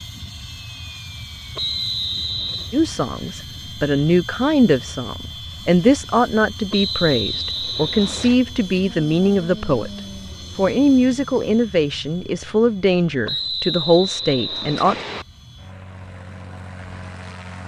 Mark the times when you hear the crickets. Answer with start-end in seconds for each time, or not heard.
not heard.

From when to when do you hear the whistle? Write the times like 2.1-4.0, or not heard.
1.6-2.8, 6.7-8.3, 13.2-15.2.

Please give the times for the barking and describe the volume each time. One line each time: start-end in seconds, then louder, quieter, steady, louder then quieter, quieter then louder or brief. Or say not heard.
not heard.